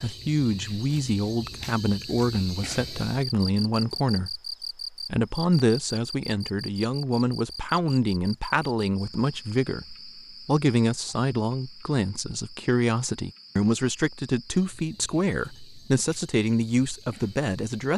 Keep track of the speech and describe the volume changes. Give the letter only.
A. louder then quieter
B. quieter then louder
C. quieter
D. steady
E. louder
D.